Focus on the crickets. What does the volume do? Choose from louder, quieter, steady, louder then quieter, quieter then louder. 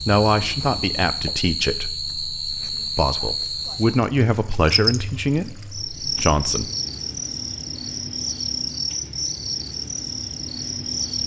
steady.